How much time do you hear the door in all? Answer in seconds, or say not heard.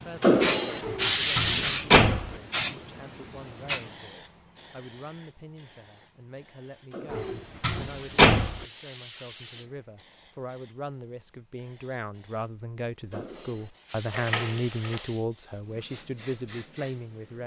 4 s.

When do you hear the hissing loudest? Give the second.
2 s.